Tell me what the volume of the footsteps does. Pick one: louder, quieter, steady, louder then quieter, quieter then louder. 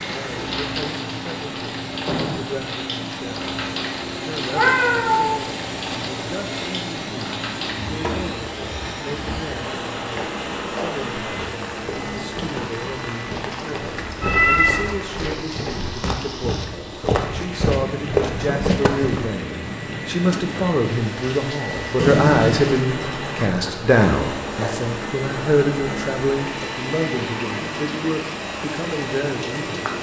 louder.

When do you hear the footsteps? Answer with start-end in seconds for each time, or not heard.
11.3-19.3.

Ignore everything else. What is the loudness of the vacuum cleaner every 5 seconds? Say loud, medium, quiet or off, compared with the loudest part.
loud, loud, loud, medium, loud, loud.